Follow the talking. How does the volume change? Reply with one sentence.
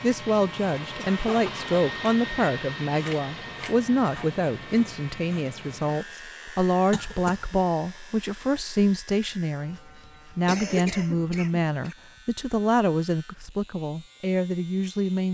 The volume of the talking stays about the same.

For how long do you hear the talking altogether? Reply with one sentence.
The talking can be heard for 15 seconds in total.